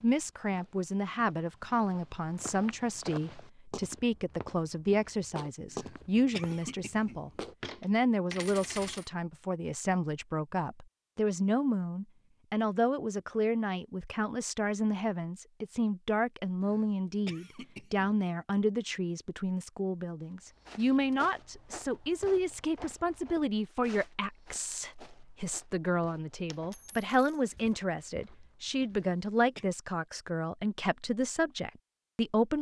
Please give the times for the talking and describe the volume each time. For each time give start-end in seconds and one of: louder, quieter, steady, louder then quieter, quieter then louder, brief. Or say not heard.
0.0-32.5 steady.